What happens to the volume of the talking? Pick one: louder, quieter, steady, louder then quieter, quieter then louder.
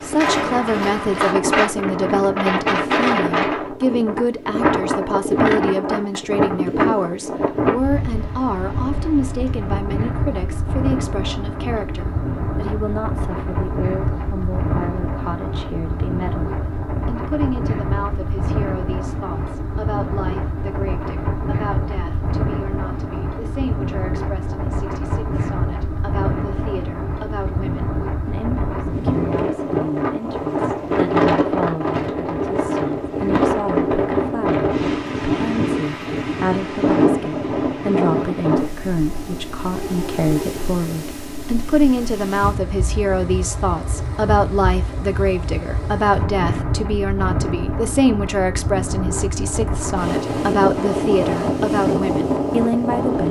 quieter then louder.